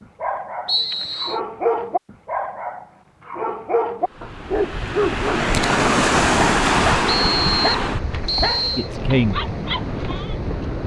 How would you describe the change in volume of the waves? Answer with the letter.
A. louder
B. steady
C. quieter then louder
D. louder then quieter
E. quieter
D.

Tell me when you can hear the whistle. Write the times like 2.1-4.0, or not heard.
0.7-1.4, 7.2-8.9.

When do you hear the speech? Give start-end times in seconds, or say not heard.
8.8-9.4.